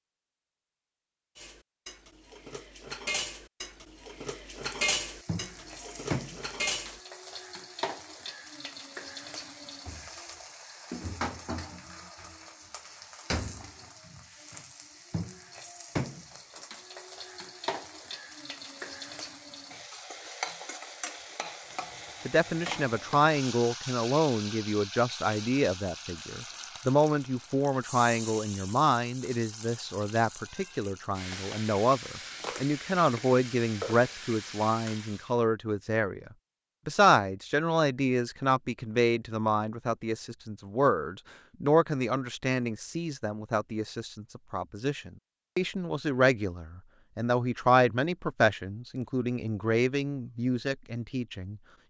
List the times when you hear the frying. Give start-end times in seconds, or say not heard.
4.5-35.4.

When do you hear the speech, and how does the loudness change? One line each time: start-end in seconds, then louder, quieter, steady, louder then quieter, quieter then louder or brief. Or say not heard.
22.2-51.6 steady.